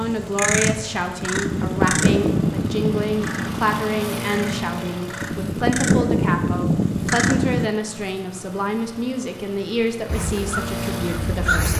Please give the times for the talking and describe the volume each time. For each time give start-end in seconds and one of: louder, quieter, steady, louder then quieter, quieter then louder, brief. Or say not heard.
0.0-11.7 steady.